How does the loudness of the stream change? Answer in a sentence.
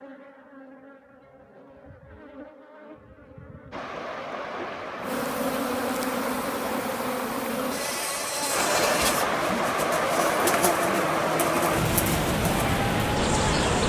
The volume of the stream goes up.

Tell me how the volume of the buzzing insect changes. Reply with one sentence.
The loudness of the buzzing insect goes up.